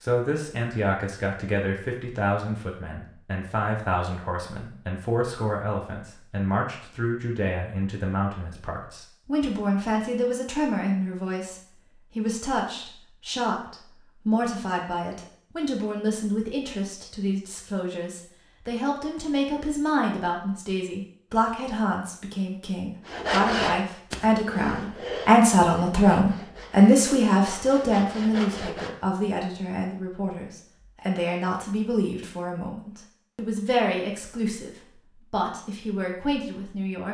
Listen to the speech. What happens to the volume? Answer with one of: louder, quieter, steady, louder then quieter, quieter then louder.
louder then quieter.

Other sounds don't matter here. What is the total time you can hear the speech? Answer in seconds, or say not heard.
37 s.